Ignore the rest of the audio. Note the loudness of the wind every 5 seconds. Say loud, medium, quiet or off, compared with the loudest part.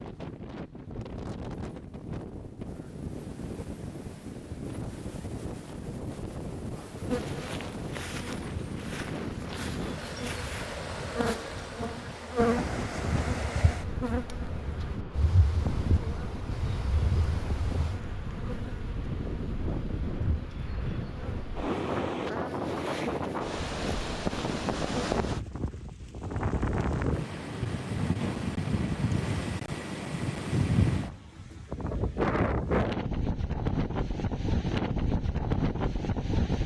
medium, medium, medium, medium, loud, loud, loud, loud.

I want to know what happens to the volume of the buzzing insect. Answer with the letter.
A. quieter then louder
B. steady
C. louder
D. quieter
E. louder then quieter
E.